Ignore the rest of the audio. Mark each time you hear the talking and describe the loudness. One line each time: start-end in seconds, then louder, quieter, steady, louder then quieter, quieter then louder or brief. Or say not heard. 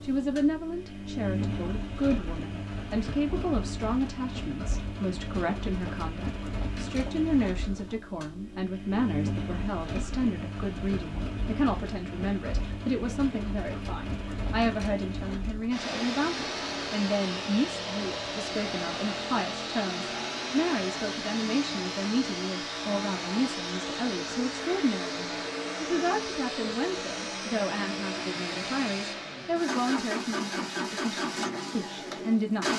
0.0-32.7 steady.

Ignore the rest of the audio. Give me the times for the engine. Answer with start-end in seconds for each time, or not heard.
0.0-32.7.